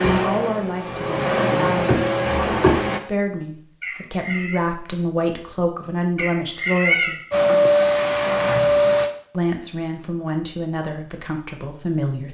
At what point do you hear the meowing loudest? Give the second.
7 s.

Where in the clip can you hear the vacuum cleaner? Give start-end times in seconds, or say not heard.
0.0-3.0, 7.3-9.1.